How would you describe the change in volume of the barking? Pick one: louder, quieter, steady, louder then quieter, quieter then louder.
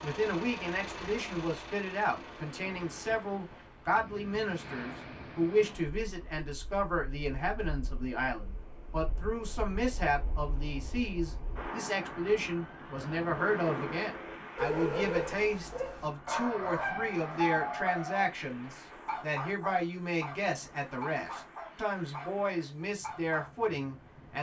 quieter.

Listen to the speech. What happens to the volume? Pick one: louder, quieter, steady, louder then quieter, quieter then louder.
steady.